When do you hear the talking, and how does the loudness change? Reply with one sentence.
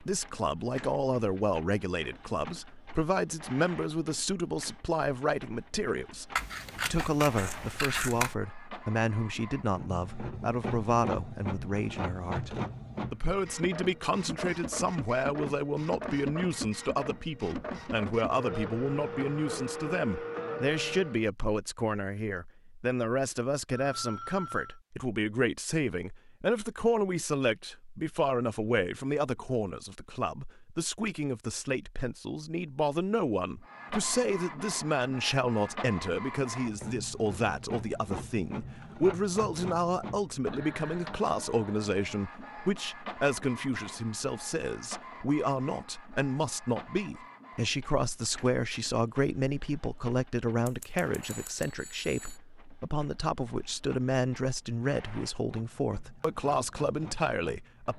The talking can be heard from 0.0 to 57.9 s, at a steady volume.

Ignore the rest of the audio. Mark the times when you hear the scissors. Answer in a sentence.
The scissors can be heard from 6.3 to 8.3 s and from 50.6 to 51.7 s.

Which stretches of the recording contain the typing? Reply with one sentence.
The typing can't be heard in this clip.